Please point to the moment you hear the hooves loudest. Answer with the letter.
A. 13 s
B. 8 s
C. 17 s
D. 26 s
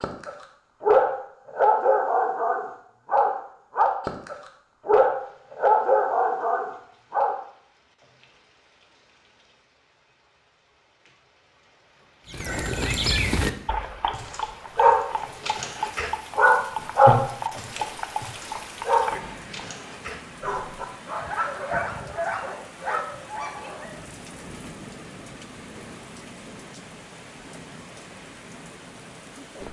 A.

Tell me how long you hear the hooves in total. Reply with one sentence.
The hooves can be heard for 7 seconds in total.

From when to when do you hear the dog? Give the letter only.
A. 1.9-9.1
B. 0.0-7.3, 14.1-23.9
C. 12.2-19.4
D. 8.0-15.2
B.